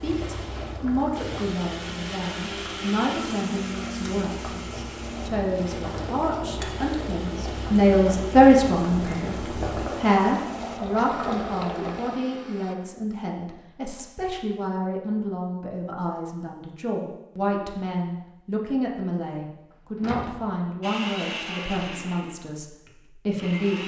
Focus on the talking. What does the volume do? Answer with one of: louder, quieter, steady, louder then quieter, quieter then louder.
louder then quieter.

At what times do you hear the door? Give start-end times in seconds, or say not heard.
20.0-20.4.